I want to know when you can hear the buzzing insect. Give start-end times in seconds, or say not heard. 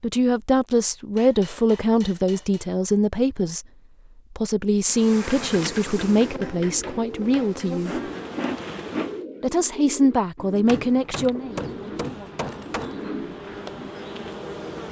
4.8-9.2, 11.3-14.8.